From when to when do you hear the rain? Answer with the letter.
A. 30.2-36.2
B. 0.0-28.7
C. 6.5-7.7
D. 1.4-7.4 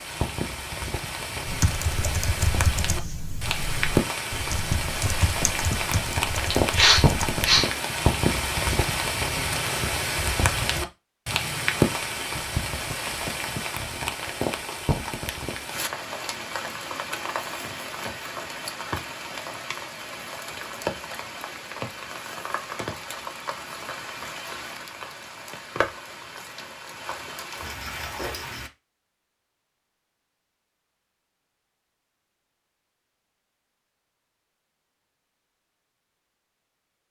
B.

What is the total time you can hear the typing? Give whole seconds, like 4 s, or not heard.
6 s.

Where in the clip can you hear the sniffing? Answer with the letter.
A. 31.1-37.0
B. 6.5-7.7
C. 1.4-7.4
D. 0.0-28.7
B.